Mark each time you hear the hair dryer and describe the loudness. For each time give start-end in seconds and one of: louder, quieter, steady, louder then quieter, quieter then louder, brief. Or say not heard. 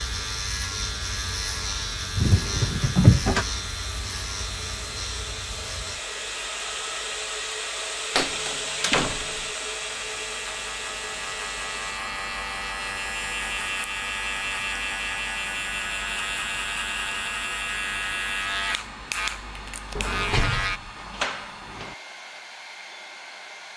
0.0-23.7 louder then quieter.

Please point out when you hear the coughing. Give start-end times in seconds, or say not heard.
not heard.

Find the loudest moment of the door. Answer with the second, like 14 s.
3 s.